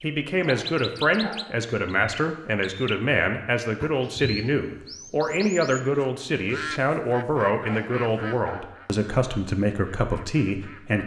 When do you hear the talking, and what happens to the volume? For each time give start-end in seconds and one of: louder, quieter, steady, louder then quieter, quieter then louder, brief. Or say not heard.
0.0-11.0 steady.